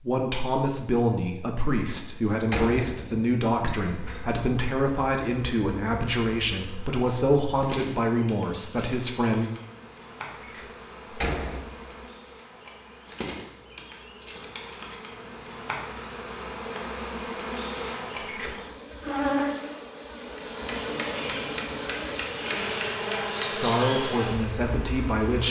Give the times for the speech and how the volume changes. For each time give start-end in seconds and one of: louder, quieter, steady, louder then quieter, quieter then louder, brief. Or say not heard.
0.0-9.5 steady
23.5-25.4 brief.